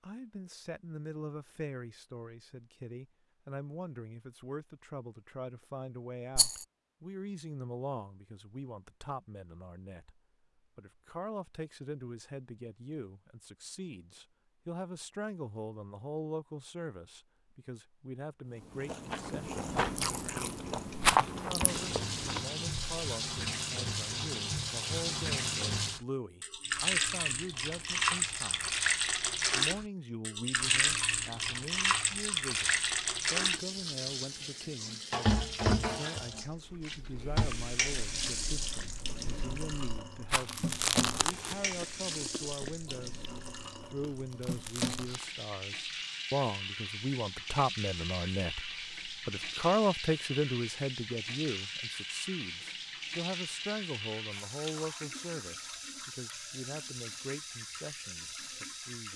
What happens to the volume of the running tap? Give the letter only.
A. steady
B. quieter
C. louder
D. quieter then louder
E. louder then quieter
B.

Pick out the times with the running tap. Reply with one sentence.
You can hear the running tap from 21.6 to 59.1 s.